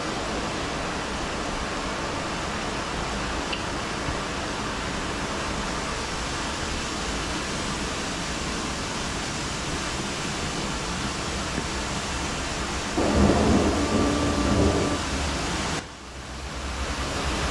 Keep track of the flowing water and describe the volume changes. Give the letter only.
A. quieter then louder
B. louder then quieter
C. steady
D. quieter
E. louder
C.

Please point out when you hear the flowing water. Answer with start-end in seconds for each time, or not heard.
0.0-17.4.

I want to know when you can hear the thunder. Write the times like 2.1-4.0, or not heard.
12.9-15.0.